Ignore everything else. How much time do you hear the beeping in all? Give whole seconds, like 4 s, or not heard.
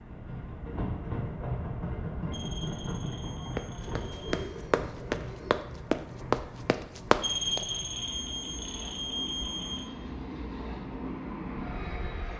5 s.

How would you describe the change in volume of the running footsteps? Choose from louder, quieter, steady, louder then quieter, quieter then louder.
louder.